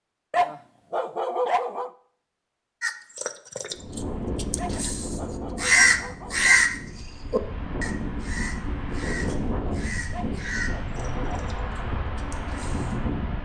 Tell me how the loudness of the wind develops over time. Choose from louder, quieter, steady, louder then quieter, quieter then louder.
quieter then louder.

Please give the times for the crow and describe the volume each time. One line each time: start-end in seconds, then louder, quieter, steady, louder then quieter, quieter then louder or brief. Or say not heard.
2.8-12.9 louder then quieter.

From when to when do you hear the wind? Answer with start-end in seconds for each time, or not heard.
3.8-13.4.